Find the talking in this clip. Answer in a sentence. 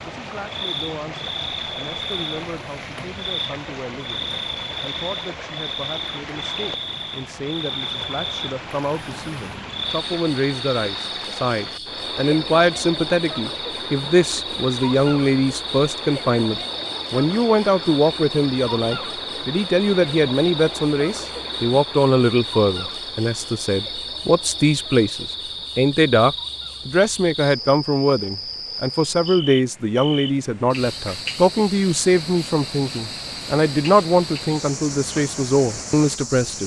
You can hear the talking from 0.0 to 36.6 s.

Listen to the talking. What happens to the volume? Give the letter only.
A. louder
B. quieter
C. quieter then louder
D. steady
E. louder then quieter
A.